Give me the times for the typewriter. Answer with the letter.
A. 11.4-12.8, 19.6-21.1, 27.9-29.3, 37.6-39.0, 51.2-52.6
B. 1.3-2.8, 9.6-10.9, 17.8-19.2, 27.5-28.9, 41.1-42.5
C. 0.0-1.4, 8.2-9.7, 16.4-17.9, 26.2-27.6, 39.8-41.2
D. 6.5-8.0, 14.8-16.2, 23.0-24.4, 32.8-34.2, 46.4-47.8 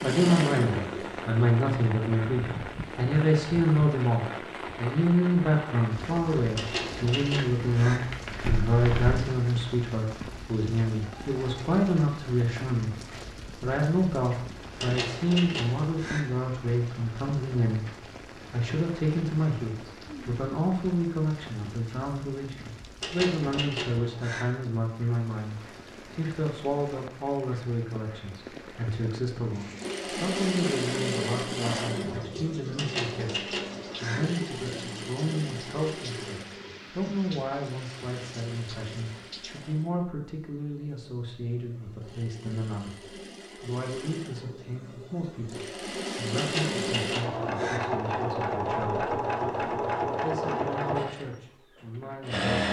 D.